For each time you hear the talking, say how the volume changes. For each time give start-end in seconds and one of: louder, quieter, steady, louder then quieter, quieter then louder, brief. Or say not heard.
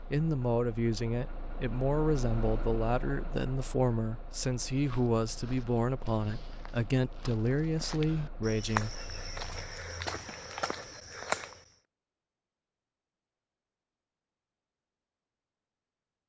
0.1-9.0 steady.